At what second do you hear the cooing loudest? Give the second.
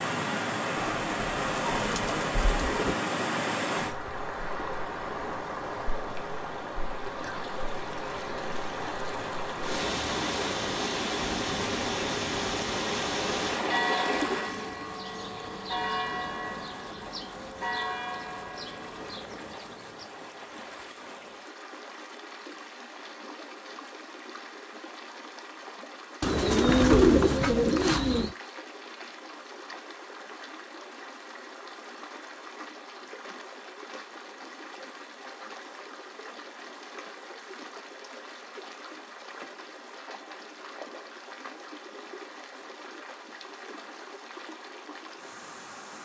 27 s.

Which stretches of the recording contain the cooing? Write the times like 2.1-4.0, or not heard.
0.8-3.0, 26.2-28.4.